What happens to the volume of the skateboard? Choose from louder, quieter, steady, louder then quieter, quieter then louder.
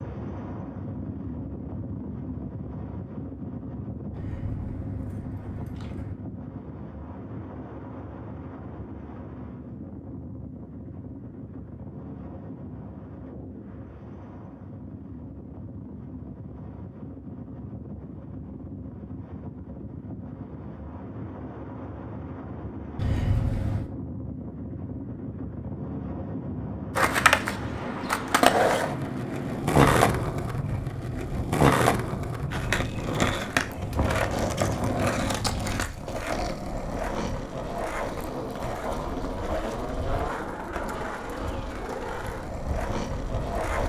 quieter.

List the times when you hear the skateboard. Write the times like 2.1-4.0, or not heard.
26.9-43.8.